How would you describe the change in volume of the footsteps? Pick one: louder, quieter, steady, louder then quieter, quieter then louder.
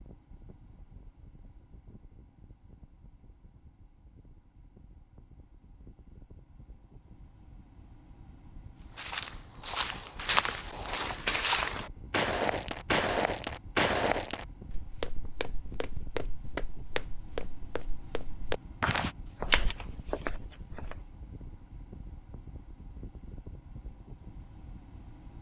quieter then louder.